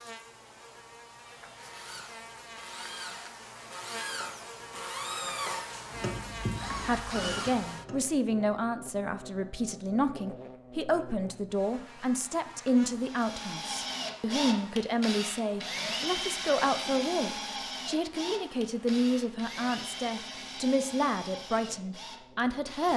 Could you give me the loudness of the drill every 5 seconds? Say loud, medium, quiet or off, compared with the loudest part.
medium, loud, loud, loud, medium.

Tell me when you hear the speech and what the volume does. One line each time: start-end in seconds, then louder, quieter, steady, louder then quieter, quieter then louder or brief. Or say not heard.
6.8-22.9 steady.